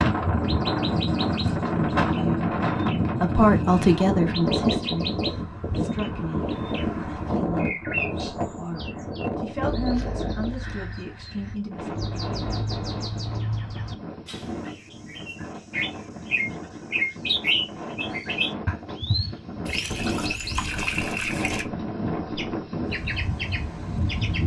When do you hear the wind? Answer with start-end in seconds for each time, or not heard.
0.0-24.4.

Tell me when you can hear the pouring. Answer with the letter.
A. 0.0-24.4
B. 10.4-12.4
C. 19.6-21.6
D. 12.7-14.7
C.